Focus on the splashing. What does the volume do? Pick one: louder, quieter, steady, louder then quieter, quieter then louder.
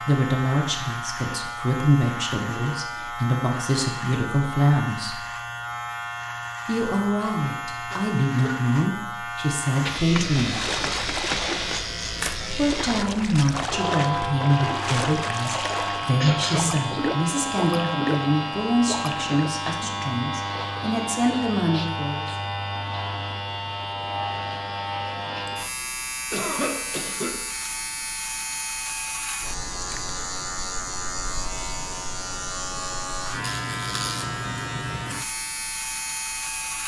steady.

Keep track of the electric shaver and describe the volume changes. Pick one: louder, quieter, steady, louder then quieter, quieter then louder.
steady.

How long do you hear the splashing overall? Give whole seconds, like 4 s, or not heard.
9 s.